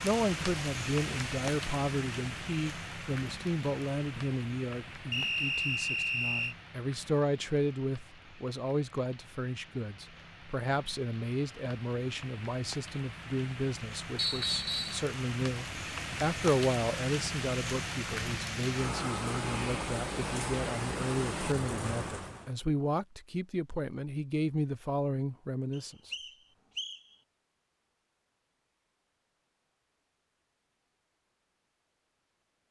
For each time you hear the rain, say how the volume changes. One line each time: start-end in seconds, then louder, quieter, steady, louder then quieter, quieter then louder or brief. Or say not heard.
0.0-22.5 quieter then louder.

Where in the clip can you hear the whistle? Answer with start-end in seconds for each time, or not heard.
5.1-6.5, 14.2-15.0, 25.7-27.0.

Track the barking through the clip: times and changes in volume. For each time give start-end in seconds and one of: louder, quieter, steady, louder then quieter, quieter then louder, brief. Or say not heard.
not heard.